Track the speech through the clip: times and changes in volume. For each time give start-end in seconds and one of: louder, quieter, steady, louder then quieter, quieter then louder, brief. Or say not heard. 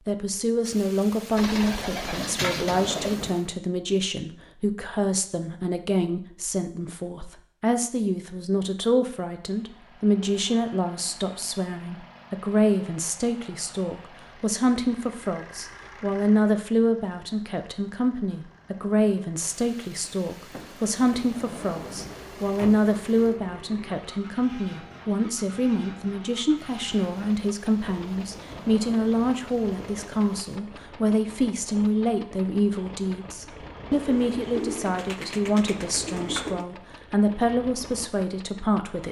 0.1-39.0 steady.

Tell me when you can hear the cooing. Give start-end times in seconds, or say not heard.
1.4-3.2, 33.9-36.6.